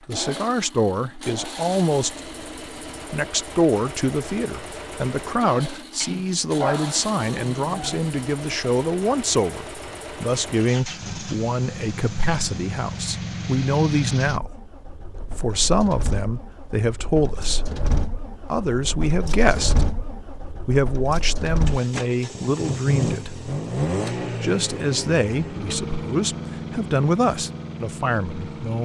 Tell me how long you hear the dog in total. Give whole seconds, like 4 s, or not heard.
2 s.